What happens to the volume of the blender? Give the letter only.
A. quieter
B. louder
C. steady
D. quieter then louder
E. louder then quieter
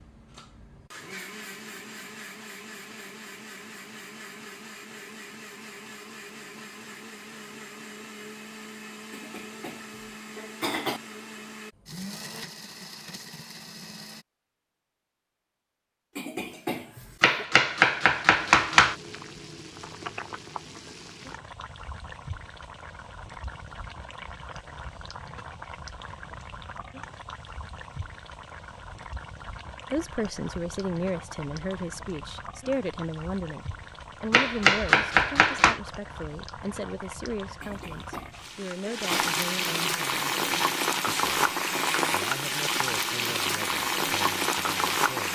C.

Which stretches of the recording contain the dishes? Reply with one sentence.
You can't hear the dishes here.